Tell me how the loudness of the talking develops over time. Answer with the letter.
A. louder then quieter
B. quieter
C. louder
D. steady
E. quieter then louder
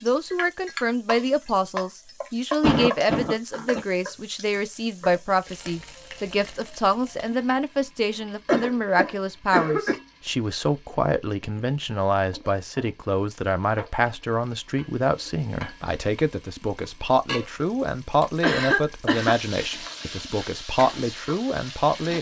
D.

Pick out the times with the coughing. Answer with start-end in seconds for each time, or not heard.
2.6-3.8, 8.4-9.9, 18.4-19.8.